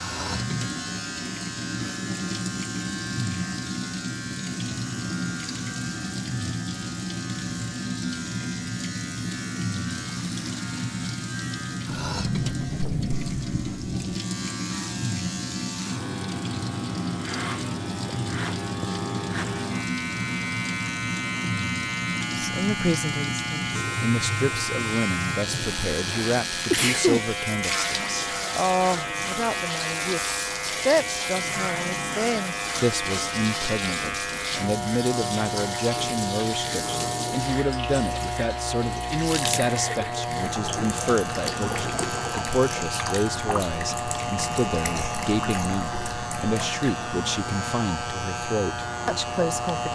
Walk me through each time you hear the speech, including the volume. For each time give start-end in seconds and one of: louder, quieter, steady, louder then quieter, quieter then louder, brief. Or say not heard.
22.3-49.8 steady.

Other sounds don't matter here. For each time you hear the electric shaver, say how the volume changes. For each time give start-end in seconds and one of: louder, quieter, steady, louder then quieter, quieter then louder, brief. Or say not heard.
0.0-49.8 louder.